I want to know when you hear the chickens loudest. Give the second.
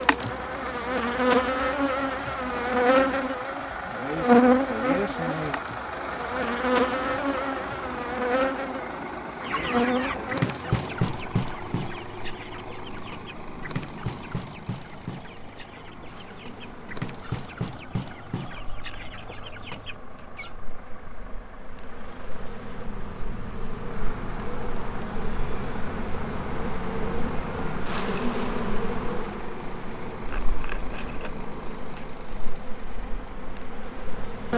11 s.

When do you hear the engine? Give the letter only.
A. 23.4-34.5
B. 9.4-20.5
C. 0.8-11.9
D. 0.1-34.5
D.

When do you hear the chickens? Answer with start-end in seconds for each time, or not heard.
9.4-20.5.